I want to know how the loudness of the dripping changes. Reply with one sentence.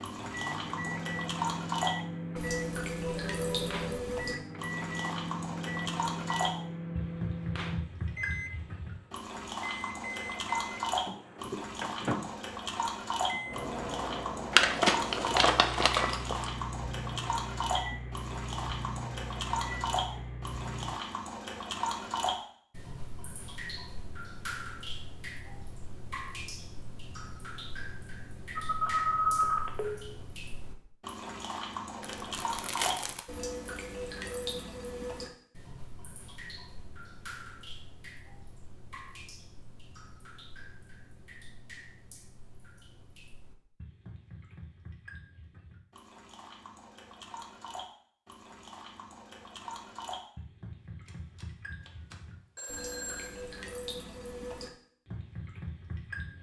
The volume of the dripping goes down.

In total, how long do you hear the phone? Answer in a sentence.
You can hear the phone for 5 seconds altogether.